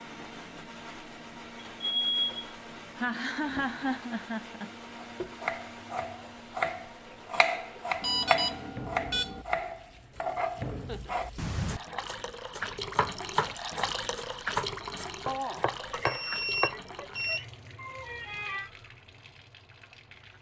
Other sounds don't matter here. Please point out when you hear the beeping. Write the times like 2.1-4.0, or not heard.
1.6-2.5, 8.0-9.4, 15.8-17.4.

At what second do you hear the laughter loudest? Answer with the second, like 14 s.
4 s.